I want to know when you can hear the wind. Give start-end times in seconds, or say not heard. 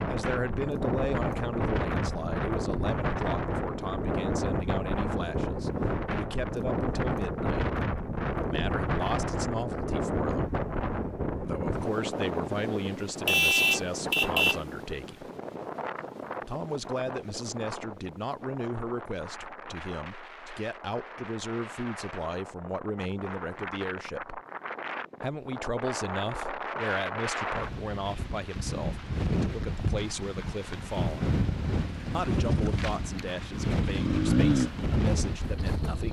0.0-36.0.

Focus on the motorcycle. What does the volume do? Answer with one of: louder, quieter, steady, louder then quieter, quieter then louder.
louder then quieter.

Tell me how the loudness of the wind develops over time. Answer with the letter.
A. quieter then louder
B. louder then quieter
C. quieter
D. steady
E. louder
A.